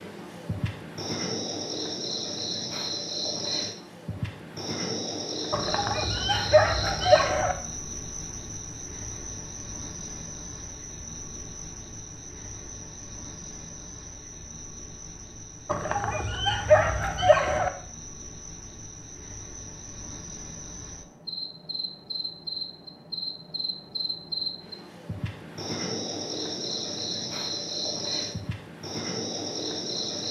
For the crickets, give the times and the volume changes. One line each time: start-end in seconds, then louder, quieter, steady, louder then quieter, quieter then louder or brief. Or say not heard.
0.0-30.2 quieter then louder.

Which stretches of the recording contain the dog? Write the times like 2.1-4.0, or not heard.
5.5-7.5, 15.7-17.7.